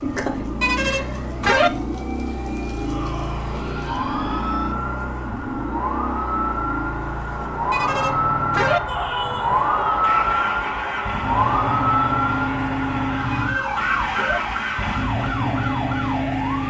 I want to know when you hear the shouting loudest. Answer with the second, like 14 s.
9 s.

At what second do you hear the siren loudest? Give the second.
10 s.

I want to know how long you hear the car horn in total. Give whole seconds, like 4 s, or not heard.
3 s.